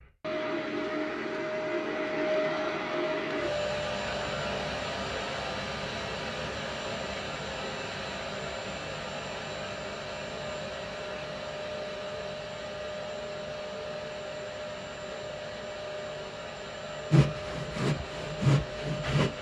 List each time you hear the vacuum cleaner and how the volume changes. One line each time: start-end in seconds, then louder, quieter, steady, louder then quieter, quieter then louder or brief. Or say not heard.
0.0-19.3 quieter.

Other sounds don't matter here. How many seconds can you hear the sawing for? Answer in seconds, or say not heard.
2 s.